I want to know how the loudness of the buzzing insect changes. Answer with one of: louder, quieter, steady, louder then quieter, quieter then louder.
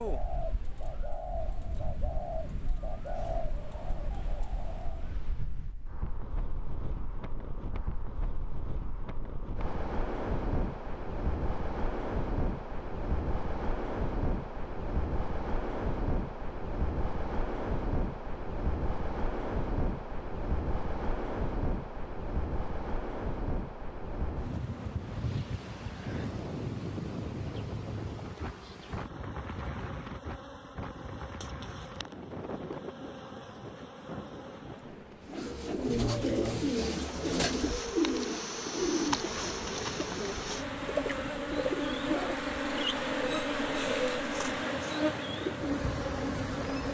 louder.